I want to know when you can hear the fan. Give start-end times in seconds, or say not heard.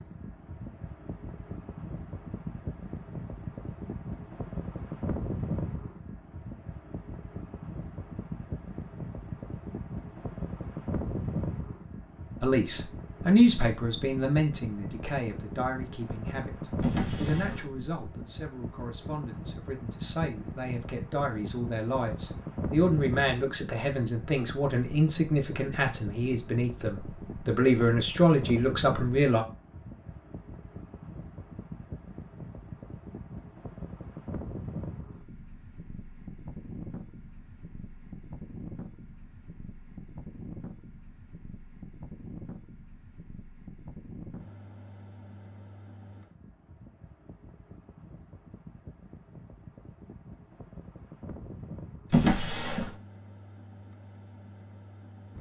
0.0-55.3.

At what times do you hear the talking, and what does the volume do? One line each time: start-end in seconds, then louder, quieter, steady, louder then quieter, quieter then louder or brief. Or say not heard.
12.4-29.4 quieter then louder.